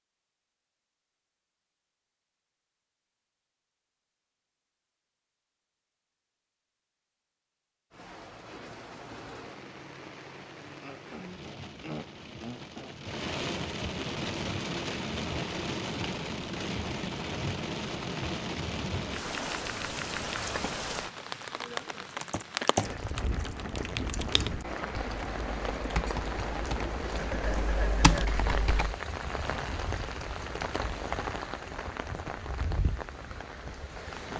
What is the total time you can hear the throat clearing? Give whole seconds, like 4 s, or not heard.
3 s.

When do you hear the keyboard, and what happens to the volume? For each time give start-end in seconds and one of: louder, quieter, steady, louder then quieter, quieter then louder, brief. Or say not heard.
22.2-28.9 quieter then louder.